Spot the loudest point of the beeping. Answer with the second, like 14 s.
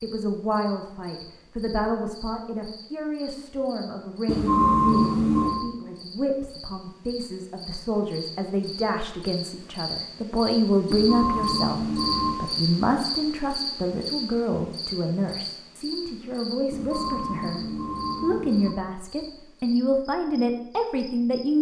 5 s.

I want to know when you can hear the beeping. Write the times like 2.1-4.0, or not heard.
4.2-5.7, 10.9-12.4, 16.7-18.8.